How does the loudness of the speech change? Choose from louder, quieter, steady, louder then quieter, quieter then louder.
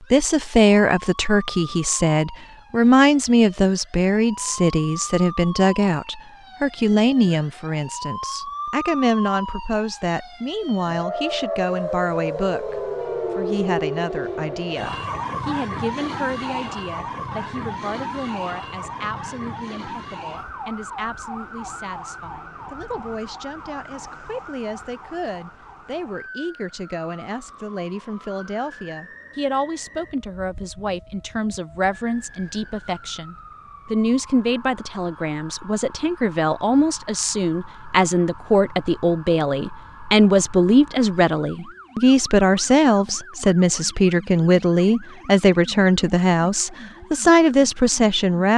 quieter then louder.